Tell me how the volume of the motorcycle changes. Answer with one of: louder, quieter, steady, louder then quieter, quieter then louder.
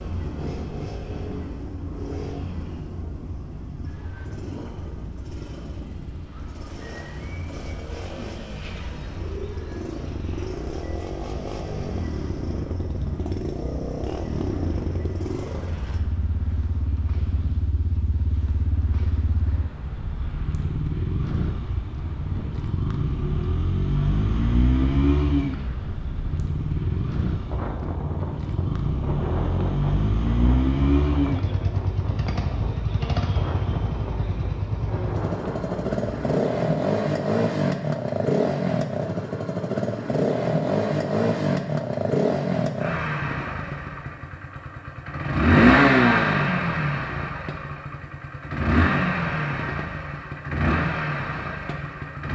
louder.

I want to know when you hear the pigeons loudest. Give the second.
9 s.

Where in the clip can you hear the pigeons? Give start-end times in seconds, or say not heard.
8.0-10.6.